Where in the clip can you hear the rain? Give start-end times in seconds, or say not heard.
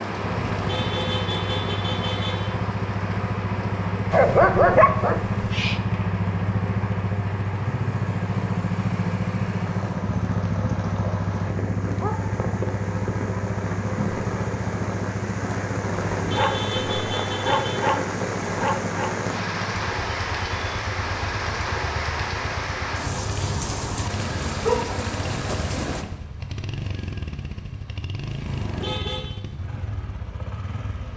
0.0-26.1.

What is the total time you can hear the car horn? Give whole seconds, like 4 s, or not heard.
5 s.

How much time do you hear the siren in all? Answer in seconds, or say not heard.
not heard.